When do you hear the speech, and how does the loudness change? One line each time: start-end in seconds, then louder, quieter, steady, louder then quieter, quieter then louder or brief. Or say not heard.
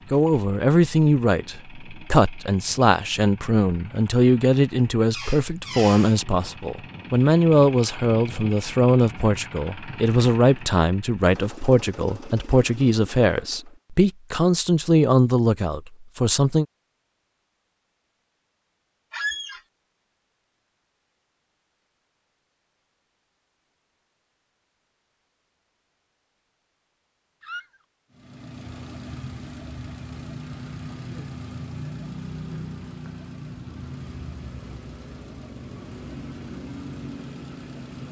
0.1-16.6 steady.